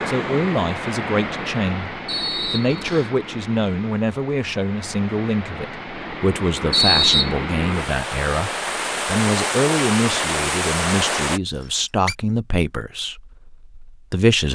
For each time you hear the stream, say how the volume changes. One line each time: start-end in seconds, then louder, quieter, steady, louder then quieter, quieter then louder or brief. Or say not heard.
0.0-11.4 quieter then louder.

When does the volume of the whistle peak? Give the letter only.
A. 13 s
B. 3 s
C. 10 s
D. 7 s
D.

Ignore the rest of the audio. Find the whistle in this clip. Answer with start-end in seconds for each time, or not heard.
2.0-3.1, 6.7-7.3, 11.6-12.2.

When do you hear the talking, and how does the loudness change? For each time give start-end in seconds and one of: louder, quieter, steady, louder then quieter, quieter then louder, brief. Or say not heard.
0.1-14.5 steady.